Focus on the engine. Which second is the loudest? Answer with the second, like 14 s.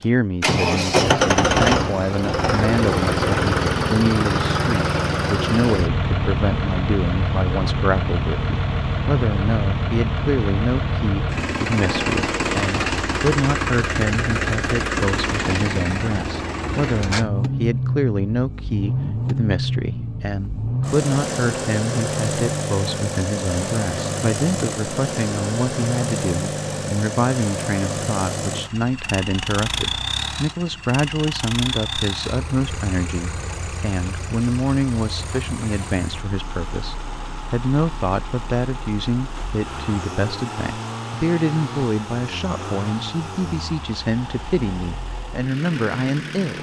1 s.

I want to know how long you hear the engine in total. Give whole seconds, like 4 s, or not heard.
46 s.